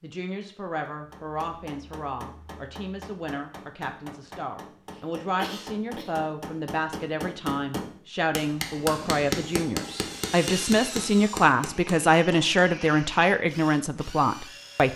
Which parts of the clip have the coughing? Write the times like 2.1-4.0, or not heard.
4.9-6.1.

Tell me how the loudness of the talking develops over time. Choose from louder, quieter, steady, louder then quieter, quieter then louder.
louder.